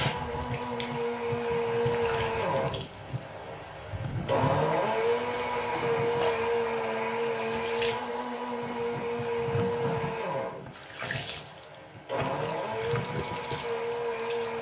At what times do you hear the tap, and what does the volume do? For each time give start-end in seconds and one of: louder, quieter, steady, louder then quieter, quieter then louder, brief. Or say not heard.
0.0-14.5 steady.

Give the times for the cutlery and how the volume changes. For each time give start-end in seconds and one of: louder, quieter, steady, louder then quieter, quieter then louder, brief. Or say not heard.
not heard.